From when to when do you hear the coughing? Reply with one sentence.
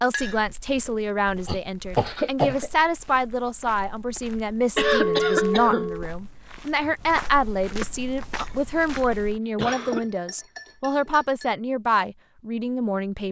You can hear the coughing from 1.4 to 2.7 s, from 4.8 to 5.9 s and from 9.6 to 10.1 s.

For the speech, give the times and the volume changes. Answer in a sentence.
The speech can be heard from 0.0 to 13.2 s, at a steady volume.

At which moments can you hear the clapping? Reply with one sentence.
You can't hear the clapping here.